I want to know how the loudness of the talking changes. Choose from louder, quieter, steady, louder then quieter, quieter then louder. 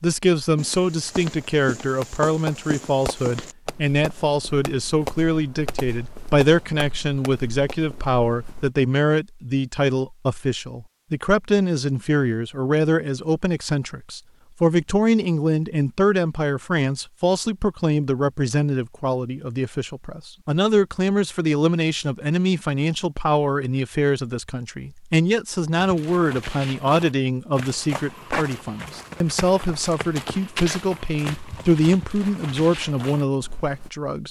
steady.